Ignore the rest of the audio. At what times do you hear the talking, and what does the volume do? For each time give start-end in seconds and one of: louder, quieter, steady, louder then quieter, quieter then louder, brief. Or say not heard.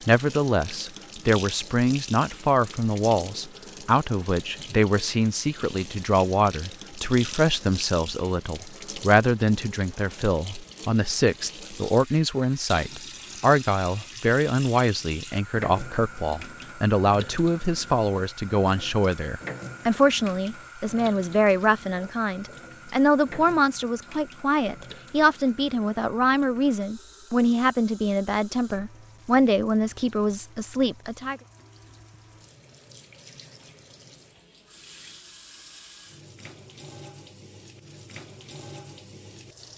0.1-31.4 steady.